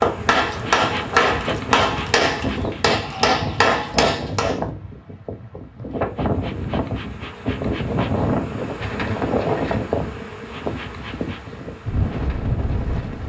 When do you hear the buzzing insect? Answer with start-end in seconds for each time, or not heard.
0.0-2.9, 5.8-13.2.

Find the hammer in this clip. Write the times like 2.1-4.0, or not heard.
0.0-4.6.